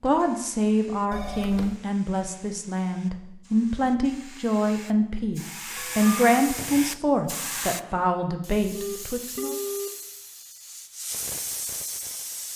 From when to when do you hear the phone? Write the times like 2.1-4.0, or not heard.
1.1-1.8, 5.8-6.2, 8.8-9.9.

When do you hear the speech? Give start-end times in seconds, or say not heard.
0.0-9.6.